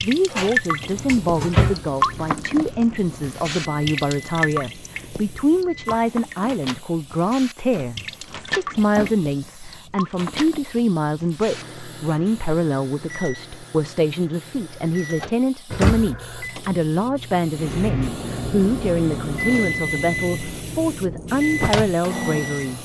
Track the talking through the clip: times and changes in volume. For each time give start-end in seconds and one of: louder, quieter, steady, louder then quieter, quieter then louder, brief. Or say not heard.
0.0-22.7 steady.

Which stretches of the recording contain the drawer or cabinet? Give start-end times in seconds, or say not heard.
0.3-1.8, 7.7-9.5, 15.7-16.4.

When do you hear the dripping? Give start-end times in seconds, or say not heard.
0.0-11.7.